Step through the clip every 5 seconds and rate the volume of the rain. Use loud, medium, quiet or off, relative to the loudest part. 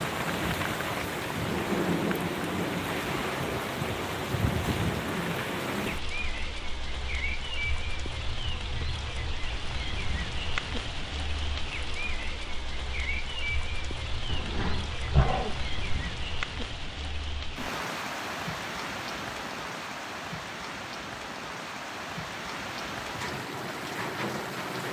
loud, medium, medium, medium, medium.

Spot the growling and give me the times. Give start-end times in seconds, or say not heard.
14.2-16.1.